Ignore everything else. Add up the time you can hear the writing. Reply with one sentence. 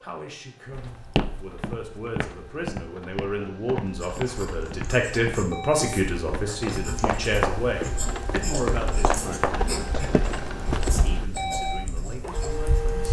You can hear the writing for 9 seconds altogether.